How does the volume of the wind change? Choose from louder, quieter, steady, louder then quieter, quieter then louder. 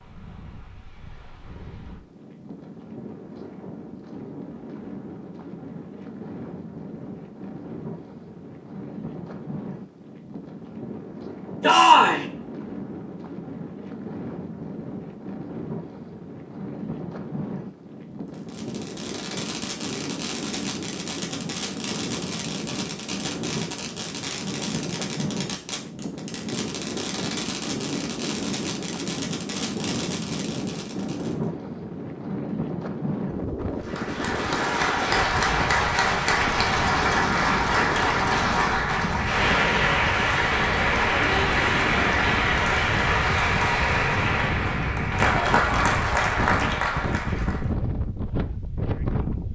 louder.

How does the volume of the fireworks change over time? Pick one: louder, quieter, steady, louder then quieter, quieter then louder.
steady.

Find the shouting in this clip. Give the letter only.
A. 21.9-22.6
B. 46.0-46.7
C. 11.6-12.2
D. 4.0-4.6
C.